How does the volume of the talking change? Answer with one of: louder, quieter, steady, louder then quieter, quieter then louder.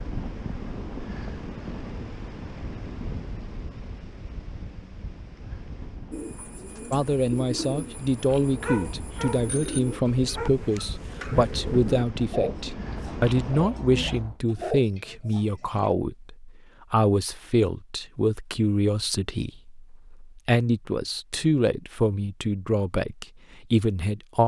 steady.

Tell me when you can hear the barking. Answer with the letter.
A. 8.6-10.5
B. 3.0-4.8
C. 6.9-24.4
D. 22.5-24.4
A.